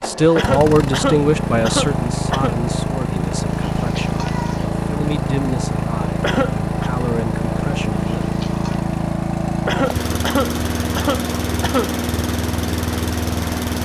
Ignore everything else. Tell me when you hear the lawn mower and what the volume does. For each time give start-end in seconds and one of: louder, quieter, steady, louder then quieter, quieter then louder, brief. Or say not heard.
0.0-13.8 steady.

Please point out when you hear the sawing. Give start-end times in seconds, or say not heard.
not heard.